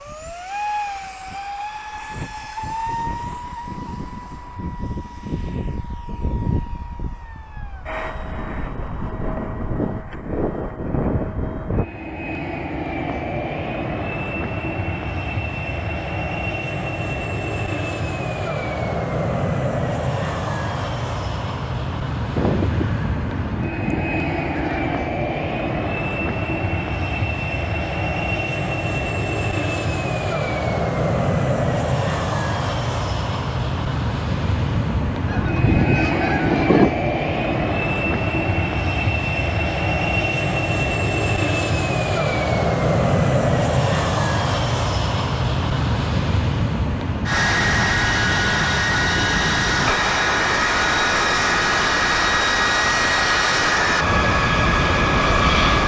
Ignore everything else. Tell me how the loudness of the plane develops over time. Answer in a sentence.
The loudness of the plane goes up.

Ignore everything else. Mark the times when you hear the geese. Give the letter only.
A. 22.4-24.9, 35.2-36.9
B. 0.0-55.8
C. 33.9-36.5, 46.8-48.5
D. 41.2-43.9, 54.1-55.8
A.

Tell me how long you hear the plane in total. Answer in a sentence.
You can hear the plane for 56 seconds altogether.